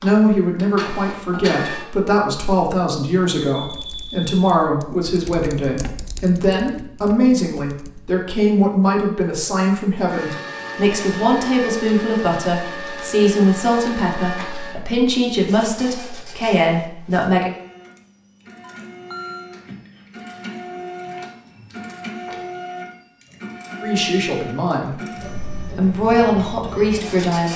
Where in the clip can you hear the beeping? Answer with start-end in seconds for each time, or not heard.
3.5-4.5, 18.6-19.5.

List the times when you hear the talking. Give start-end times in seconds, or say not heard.
0.0-17.5, 23.8-27.5.